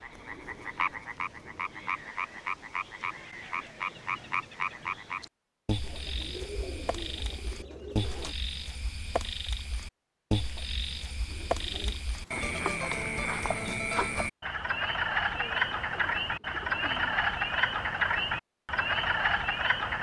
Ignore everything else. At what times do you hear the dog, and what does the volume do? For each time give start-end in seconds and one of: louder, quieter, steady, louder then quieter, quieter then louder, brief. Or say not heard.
not heard.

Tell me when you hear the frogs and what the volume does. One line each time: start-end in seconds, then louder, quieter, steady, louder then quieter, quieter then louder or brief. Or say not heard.
0.0-19.9 louder.